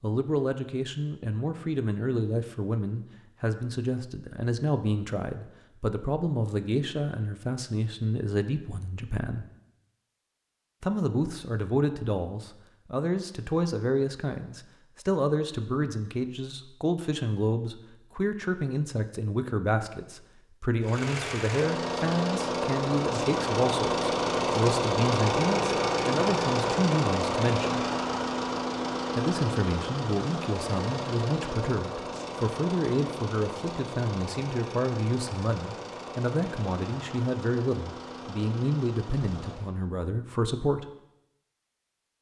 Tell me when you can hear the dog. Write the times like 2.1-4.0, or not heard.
not heard.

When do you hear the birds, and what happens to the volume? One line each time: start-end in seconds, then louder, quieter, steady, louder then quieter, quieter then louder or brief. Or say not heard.
not heard.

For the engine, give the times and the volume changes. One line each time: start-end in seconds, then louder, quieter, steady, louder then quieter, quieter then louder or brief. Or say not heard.
20.8-39.8 quieter.